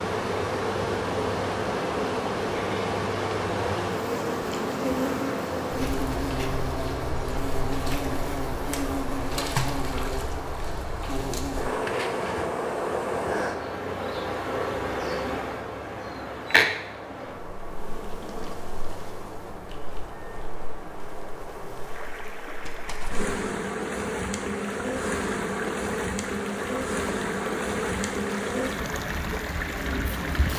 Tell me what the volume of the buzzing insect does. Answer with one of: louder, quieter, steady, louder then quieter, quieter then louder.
quieter then louder.